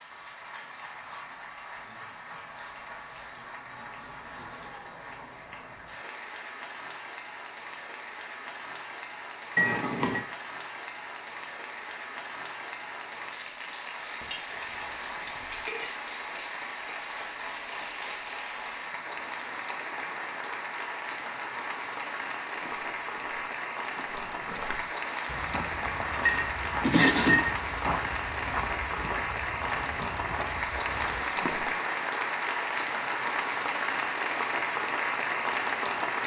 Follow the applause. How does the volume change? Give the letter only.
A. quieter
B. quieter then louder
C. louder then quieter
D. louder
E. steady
D.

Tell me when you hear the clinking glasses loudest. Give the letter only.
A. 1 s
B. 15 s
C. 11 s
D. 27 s
D.